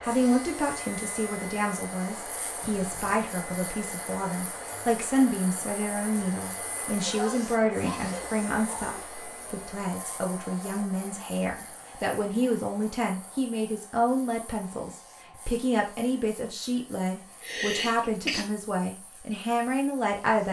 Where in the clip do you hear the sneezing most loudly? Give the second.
18 s.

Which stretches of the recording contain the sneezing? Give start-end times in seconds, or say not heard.
2.6-3.2, 7.0-9.1, 17.4-18.4.